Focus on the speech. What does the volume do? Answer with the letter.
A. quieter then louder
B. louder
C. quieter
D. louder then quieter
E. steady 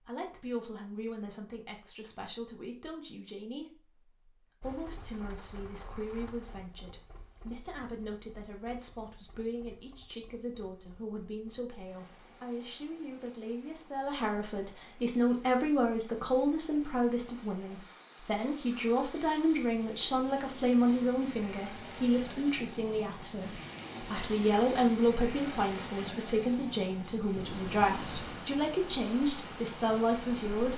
B.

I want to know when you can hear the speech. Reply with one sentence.
You can hear the speech from 0.0 to 30.7 s.